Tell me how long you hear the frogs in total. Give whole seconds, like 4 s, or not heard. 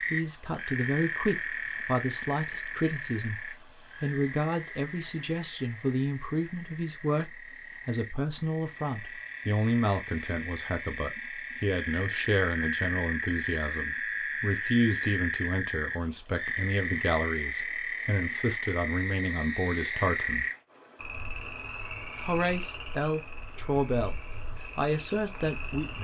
26 s.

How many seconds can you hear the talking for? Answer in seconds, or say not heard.
24 s.